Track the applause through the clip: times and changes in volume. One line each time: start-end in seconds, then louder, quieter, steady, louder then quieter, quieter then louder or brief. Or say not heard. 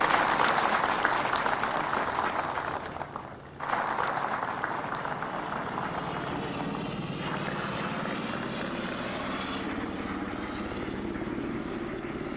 0.0-12.3 quieter.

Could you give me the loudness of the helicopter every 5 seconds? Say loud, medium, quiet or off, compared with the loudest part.
medium, loud, loud.